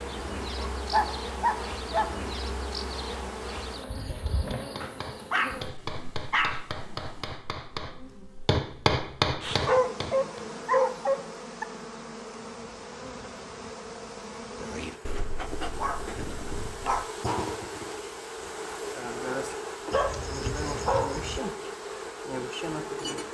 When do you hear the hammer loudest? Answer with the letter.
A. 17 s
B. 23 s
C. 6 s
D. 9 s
D.